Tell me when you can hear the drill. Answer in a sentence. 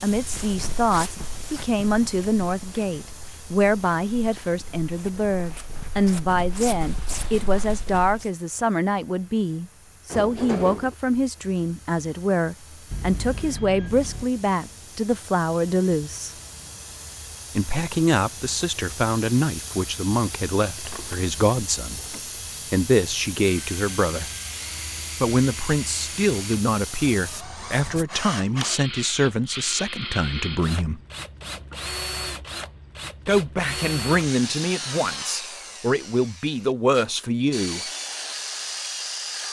You can hear the drill from 23.4 to 39.4 s.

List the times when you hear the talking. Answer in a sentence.
The talking can be heard from 0.0 to 16.3 s, from 17.6 to 24.3 s, from 25.2 to 31.0 s and from 33.2 to 37.9 s.